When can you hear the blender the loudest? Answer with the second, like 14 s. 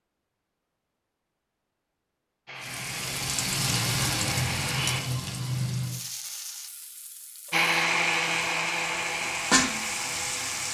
8 s.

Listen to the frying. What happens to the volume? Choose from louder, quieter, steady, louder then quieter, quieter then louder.
quieter then louder.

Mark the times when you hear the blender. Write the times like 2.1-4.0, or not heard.
2.5-5.0, 7.5-10.6.